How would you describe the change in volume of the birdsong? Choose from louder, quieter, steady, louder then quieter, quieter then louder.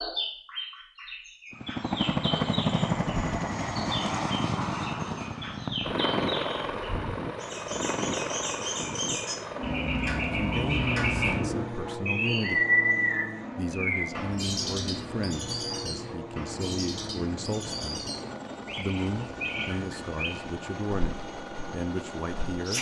louder then quieter.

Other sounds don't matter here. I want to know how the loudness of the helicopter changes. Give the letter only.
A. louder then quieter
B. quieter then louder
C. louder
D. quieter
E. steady
D.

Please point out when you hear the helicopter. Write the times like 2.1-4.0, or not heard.
1.5-22.7.